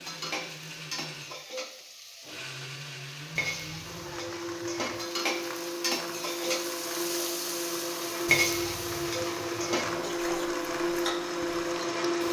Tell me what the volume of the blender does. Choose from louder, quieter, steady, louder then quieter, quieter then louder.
louder.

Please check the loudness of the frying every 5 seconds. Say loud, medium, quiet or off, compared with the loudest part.
medium, loud, medium.